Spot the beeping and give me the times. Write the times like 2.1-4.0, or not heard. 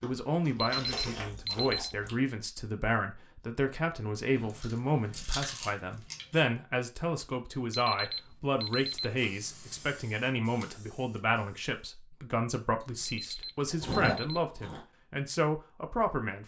0.6-1.9, 7.7-9.1, 13.1-14.4.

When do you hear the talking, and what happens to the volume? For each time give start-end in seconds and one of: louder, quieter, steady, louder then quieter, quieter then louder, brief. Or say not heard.
0.0-16.4 steady.